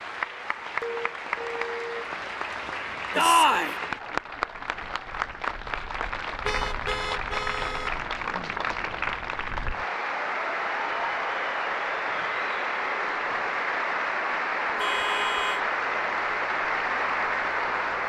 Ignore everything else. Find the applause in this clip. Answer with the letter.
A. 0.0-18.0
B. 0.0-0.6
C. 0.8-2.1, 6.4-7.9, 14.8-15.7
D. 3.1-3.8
A.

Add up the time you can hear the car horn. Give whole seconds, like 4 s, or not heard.
4 s.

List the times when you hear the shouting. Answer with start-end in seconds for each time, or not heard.
3.1-3.8.